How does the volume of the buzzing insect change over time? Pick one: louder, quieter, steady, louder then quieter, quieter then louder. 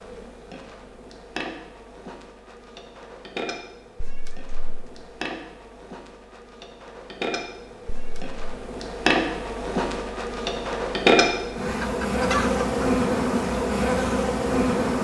louder.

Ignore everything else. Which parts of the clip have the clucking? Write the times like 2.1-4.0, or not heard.
11.8-12.8.